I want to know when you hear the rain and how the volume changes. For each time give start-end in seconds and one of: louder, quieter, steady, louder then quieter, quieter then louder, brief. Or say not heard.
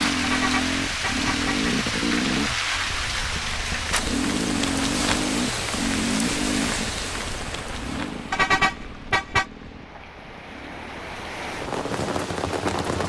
0.0-13.0 quieter then louder.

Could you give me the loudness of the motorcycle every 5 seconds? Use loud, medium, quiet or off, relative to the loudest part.
loud, loud, quiet.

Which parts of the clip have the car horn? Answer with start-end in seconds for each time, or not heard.
0.2-1.7, 8.3-9.4.